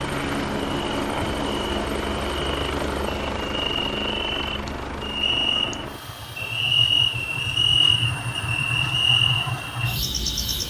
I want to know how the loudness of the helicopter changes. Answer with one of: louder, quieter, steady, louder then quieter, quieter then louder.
quieter.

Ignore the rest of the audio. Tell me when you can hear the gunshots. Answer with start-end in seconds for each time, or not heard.
not heard.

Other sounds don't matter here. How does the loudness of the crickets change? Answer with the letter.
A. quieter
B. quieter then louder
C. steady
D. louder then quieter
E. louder
E.